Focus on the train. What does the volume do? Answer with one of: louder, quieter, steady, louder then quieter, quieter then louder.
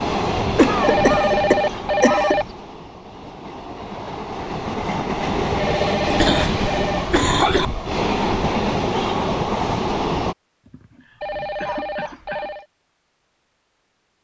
quieter then louder.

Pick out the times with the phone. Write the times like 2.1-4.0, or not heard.
0.8-2.5, 5.5-7.0, 11.2-12.7.